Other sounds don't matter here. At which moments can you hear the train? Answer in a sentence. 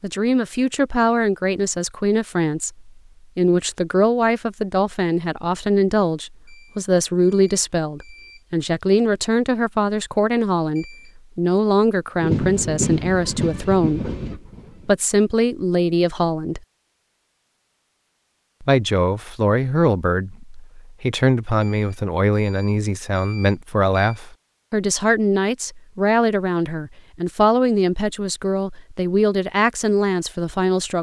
The train can be heard from 12.2 to 14.9 s.